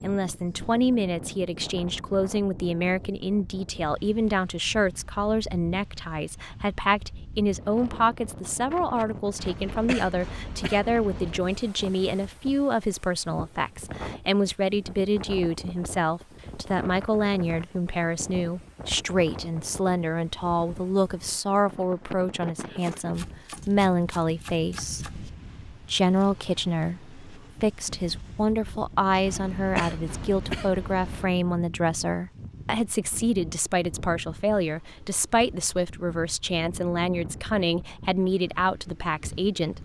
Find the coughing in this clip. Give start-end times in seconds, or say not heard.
9.3-11.4, 29.2-31.2.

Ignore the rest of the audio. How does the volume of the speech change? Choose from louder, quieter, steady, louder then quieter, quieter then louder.
steady.